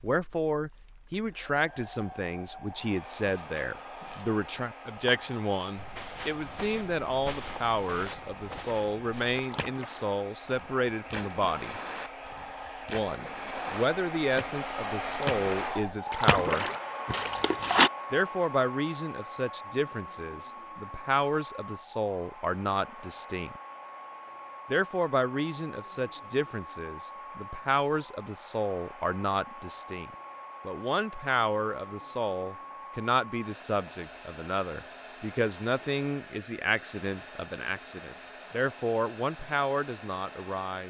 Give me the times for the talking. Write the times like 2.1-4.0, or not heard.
0.0-11.8, 12.8-16.6, 18.1-23.6, 24.7-40.8.